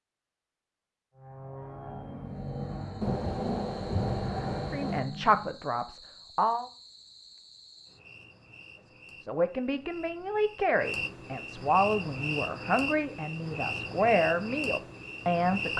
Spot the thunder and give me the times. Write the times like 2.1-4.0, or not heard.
3.0-5.0.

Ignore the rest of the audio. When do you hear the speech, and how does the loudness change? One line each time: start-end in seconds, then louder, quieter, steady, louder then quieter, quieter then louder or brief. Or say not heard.
4.7-6.7 brief
9.2-15.7 steady.